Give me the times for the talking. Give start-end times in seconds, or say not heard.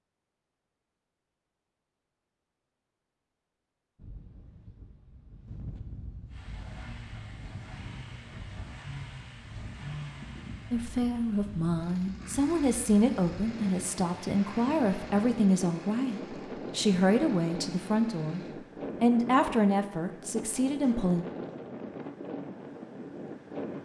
10.7-18.4, 19.0-21.2.